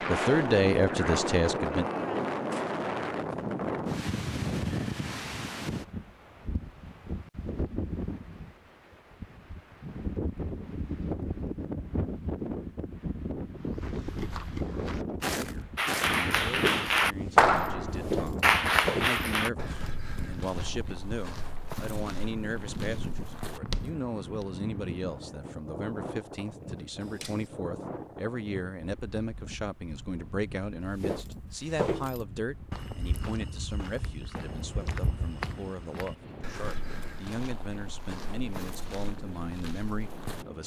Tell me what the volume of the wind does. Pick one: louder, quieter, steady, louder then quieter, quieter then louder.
quieter.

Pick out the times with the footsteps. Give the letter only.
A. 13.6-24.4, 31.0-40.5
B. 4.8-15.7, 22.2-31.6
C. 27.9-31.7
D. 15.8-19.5
A.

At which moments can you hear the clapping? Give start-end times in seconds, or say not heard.
15.8-19.5.